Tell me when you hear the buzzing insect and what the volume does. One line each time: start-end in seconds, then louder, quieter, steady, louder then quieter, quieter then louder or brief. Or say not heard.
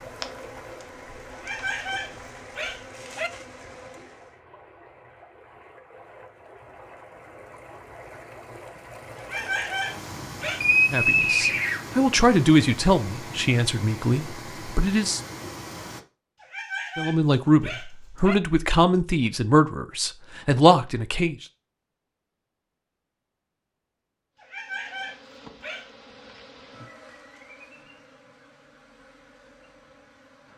0.0-4.4 steady
24.4-30.5 quieter.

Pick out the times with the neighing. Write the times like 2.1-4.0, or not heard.
10.6-11.8.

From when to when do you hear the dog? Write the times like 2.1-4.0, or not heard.
1.3-3.3, 9.2-10.7, 16.4-18.4, 24.4-25.9.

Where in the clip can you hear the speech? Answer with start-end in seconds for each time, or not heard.
10.9-15.2, 16.9-21.4.